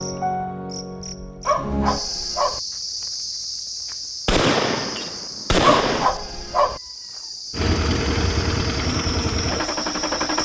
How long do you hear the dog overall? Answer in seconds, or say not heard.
2 s.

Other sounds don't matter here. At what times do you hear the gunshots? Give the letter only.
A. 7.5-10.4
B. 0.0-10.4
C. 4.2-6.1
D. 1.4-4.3
C.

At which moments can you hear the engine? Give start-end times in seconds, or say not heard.
7.5-10.4.